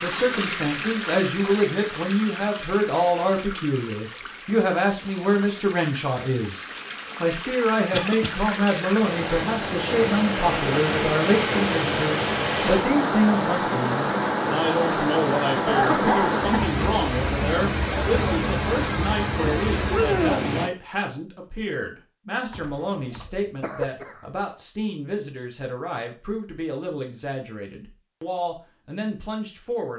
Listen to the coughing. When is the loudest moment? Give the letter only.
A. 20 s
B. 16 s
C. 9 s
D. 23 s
B.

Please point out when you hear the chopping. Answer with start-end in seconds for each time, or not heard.
not heard.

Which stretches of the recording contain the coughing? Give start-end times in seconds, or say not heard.
7.9-8.3, 15.7-16.8, 22.5-24.2.